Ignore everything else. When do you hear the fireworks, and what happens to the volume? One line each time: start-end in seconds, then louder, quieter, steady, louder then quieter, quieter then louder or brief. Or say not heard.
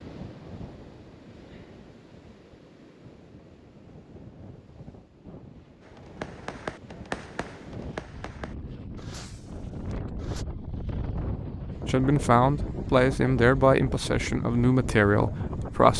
5.8-10.4 quieter.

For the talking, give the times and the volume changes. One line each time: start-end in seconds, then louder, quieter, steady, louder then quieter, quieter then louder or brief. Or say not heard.
11.8-15.9 steady.